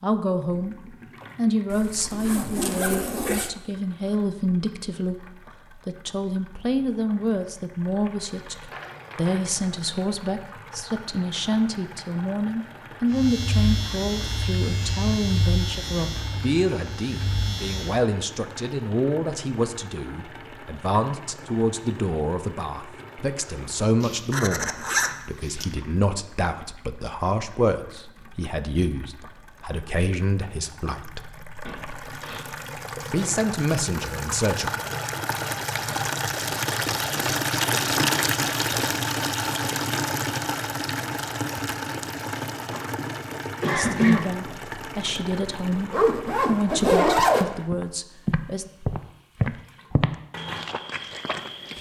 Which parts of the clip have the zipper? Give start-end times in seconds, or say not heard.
1.7-3.5, 24.0-25.6, 45.9-47.5.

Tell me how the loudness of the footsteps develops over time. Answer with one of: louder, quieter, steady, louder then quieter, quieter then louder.
louder then quieter.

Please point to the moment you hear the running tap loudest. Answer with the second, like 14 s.
38 s.